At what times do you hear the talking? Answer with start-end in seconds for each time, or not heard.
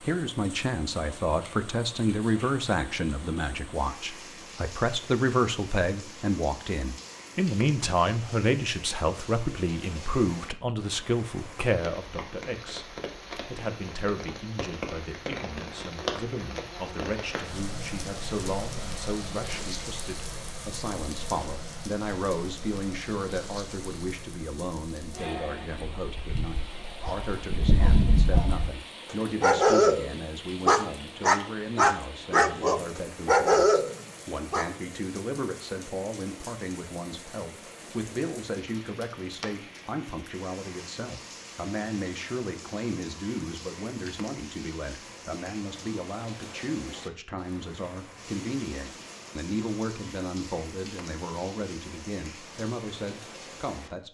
0.0-54.0.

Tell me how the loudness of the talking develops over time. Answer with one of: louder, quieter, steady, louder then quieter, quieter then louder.
quieter.